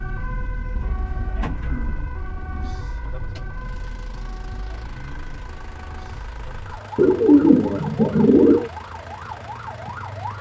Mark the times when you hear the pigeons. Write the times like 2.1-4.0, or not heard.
0.8-2.8, 7.0-8.7.